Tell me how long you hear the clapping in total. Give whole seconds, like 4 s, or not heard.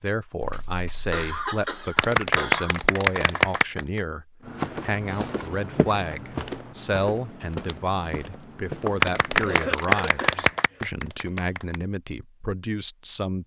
5 s.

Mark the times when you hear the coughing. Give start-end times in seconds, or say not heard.
0.4-2.8, 4.9-5.8, 9.4-10.8.